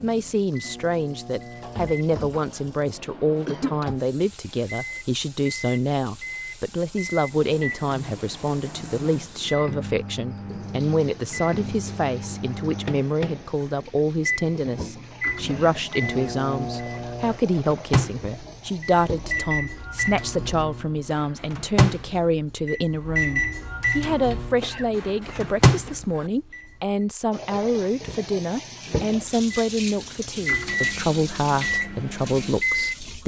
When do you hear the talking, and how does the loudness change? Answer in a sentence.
The talking can be heard from 0.0 to 33.2 s, at a steady volume.